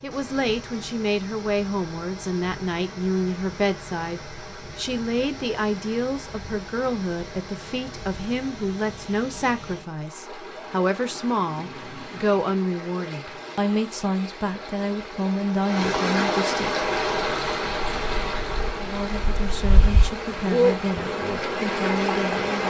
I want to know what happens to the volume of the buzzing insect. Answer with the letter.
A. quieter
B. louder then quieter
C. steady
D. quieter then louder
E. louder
B.